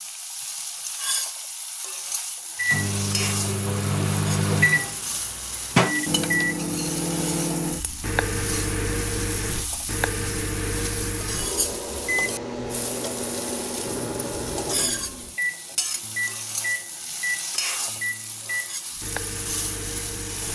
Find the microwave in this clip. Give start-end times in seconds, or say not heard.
2.5-20.5.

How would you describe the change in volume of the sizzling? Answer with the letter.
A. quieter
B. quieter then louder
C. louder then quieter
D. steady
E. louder
D.